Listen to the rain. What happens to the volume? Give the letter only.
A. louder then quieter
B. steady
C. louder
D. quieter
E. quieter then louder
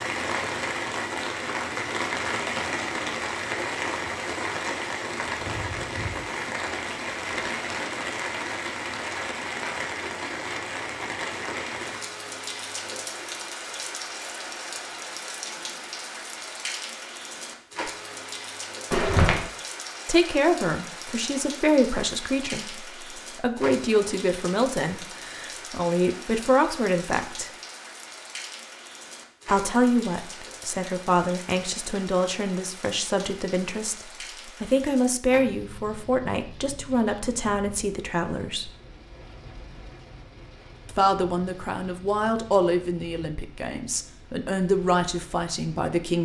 D.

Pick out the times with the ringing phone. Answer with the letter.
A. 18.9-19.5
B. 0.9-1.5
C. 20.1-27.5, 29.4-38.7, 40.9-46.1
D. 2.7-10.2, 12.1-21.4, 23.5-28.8
A.